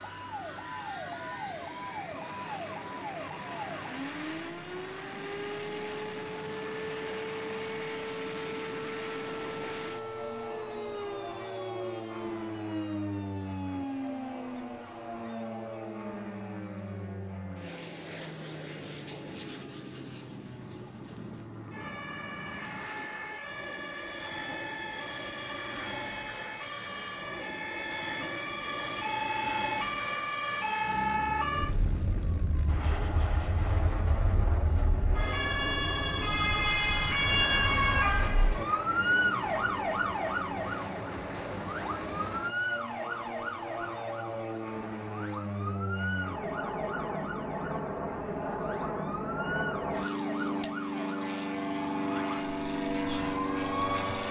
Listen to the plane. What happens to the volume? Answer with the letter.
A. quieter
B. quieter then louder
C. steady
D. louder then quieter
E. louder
E.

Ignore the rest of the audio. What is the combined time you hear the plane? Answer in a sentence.
You can hear the plane for 54 seconds altogether.